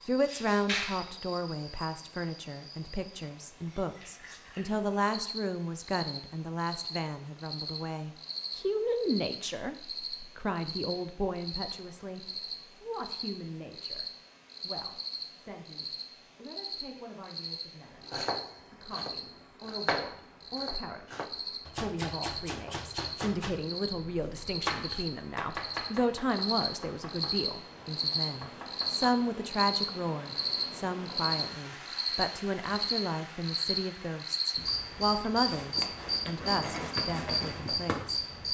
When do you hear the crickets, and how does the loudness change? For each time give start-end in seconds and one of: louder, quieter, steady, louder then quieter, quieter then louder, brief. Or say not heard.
0.0-38.4 louder.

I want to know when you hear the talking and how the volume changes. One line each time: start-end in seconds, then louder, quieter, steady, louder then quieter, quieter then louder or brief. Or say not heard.
0.0-38.2 quieter then louder.